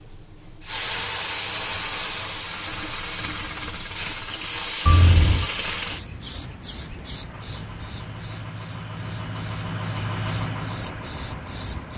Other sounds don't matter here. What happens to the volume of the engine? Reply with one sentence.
The loudness of the engine goes up, then down.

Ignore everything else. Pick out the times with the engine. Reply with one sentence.
You can hear the engine from 7.1 to 11.9 s.